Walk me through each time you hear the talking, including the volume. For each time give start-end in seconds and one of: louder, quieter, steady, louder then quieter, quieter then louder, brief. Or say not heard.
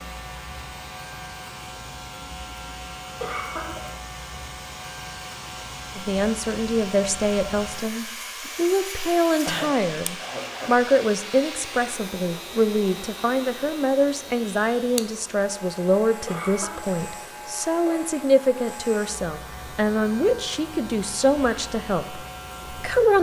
6.0-23.1 steady.